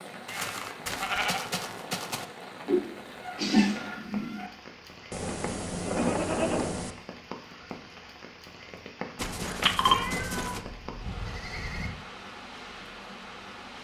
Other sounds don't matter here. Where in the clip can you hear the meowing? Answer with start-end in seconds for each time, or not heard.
2.6-4.5, 9.2-10.6.